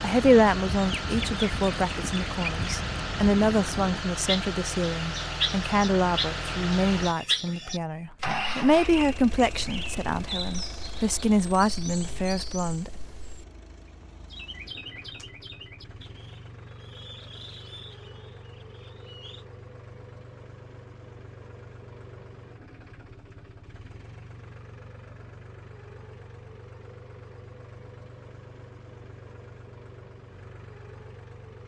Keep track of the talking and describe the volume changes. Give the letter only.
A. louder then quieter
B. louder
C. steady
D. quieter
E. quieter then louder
C.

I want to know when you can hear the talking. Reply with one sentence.
The talking can be heard from 0.0 to 12.9 s.